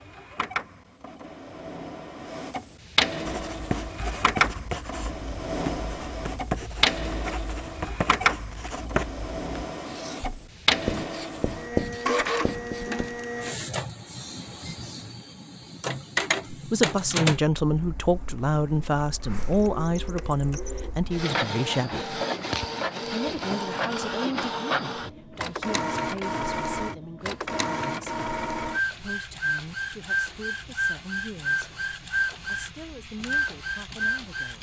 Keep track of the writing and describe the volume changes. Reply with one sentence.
The volume of the writing goes down, then up.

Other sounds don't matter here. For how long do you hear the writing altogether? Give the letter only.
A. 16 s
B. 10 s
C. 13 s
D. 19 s
B.